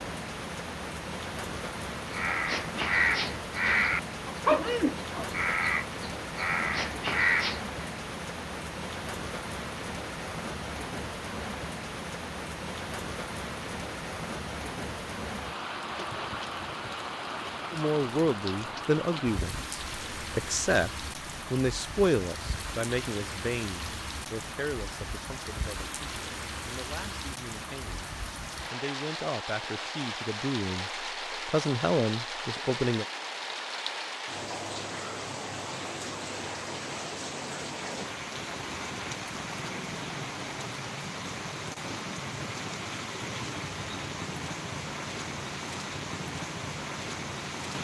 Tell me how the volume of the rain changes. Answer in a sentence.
The loudness of the rain stays about the same.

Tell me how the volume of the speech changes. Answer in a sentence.
The volume of the speech goes down, then up.